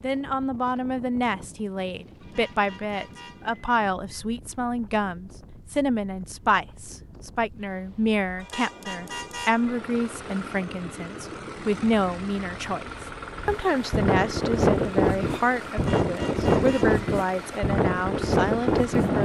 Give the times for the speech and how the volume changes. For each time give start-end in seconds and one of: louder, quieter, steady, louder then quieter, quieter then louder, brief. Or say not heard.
0.0-19.1 steady.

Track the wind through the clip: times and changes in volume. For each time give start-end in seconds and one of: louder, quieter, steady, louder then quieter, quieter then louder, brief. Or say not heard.
0.0-19.1 louder.